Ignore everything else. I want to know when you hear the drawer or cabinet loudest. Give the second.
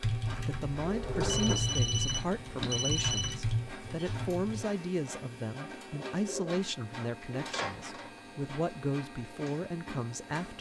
1 s.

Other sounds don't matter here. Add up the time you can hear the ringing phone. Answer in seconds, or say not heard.
2 s.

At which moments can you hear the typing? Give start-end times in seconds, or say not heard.
0.0-4.7.